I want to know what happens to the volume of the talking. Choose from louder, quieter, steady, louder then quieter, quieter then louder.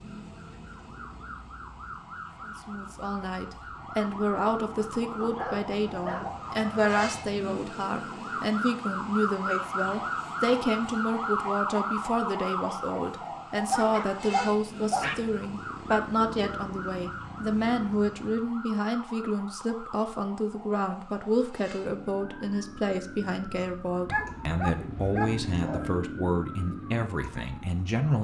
steady.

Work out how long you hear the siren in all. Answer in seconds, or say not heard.
28 s.